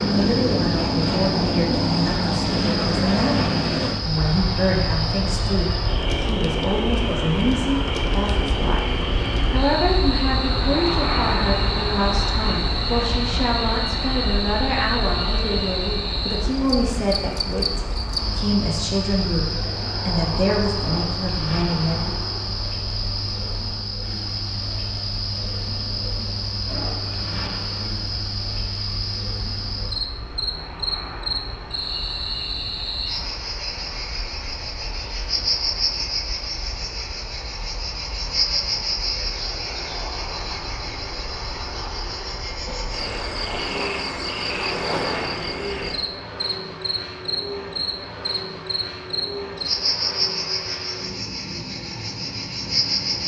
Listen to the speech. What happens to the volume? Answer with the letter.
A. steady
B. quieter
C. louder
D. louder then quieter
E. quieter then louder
A.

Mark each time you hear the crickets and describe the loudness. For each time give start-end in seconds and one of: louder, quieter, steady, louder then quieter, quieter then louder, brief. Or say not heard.
0.0-53.2 steady.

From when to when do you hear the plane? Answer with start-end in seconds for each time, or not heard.
0.0-53.2.